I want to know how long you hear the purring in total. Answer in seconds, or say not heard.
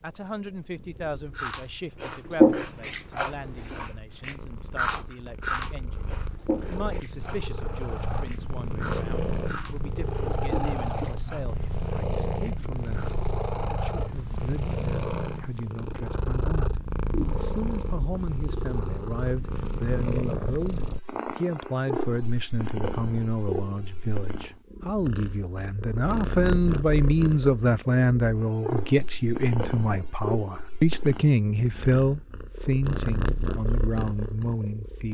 35 s.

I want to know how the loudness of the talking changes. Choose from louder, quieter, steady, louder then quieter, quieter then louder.
louder.